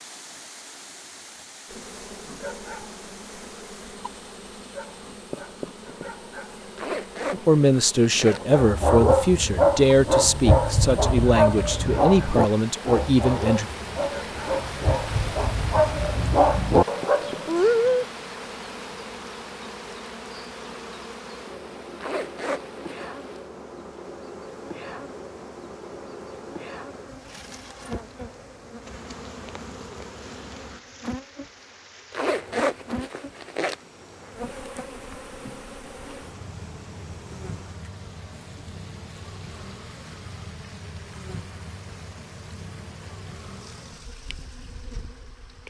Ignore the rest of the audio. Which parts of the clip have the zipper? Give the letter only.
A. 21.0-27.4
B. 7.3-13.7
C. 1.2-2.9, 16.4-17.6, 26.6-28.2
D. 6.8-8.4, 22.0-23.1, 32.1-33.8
D.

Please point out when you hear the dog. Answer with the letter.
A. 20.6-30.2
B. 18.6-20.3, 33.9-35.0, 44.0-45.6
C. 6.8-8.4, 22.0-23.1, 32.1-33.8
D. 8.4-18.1
D.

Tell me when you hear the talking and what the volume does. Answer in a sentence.
You can hear the talking from 7.3 to 13.7 s, at a steady volume.